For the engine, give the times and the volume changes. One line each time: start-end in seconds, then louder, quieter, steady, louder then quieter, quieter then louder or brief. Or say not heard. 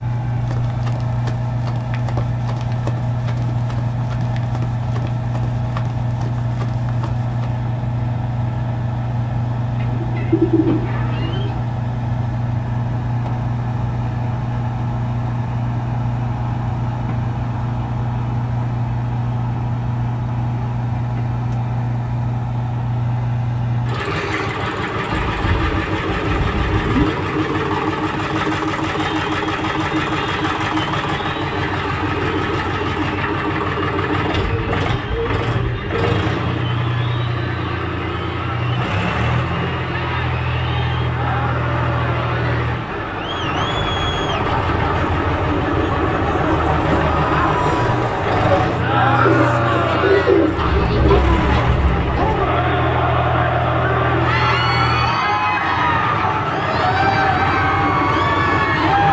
0.0-59.0 steady.